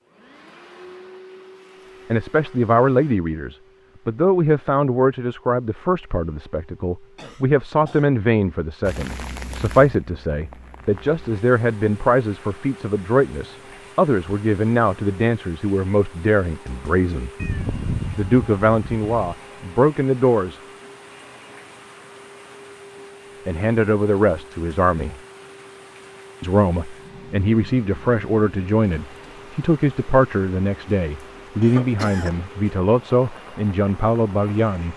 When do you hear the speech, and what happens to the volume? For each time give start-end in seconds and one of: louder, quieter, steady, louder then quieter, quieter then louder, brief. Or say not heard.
2.1-17.3 steady
18.1-20.6 brief
23.4-25.1 brief
26.4-34.9 steady.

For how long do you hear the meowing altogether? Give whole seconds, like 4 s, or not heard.
2 s.